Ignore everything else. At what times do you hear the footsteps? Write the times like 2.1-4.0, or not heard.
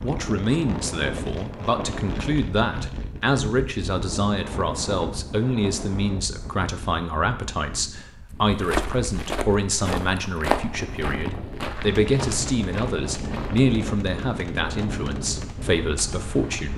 8.3-13.7.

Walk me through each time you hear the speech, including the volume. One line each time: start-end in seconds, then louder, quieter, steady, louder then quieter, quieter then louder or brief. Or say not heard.
0.0-16.7 steady.